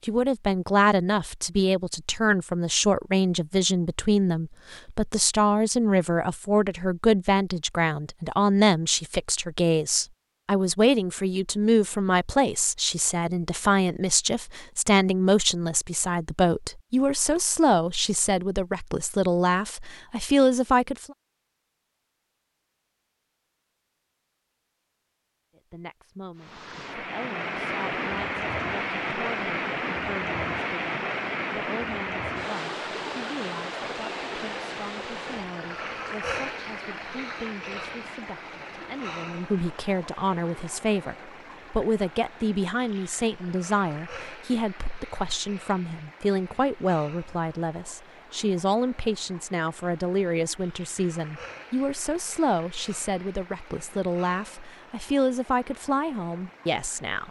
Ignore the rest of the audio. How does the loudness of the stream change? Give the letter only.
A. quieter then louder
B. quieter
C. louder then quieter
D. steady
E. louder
B.